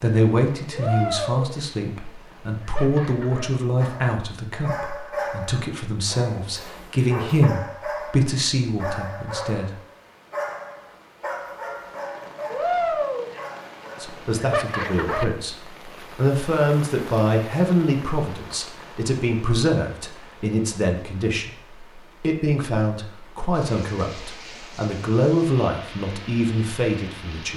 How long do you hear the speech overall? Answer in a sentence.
The speech can be heard for 23 seconds in total.